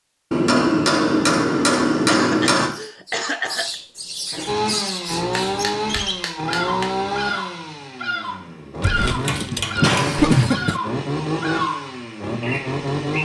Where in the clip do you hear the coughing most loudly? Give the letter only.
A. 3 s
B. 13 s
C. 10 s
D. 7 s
C.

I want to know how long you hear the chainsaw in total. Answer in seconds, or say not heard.
9 s.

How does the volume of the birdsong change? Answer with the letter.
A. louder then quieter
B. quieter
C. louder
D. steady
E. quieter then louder
D.